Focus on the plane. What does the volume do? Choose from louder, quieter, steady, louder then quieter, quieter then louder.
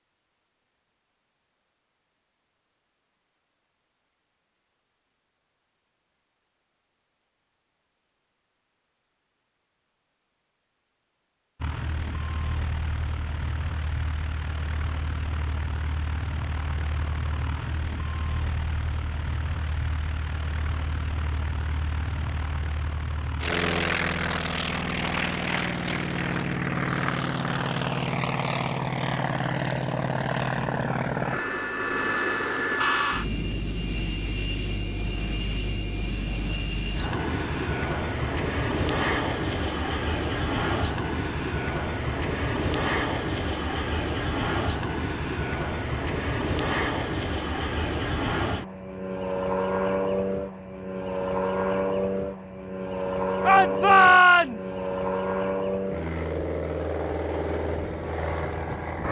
louder.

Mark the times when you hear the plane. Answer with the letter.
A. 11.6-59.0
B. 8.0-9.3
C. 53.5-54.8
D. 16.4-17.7
A.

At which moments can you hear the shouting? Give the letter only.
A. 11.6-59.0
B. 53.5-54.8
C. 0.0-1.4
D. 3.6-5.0
B.